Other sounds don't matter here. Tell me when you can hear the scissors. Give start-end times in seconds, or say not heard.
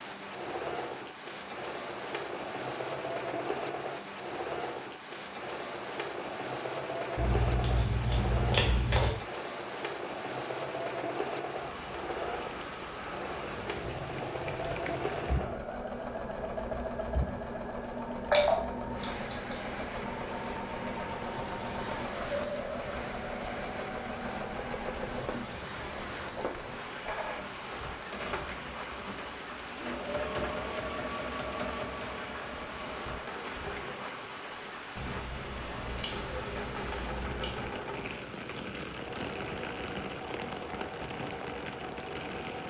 7.2-9.1, 18.3-19.6, 35.0-37.7.